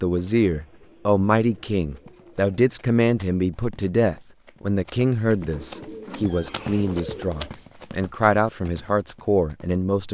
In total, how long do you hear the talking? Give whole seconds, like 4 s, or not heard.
10 s.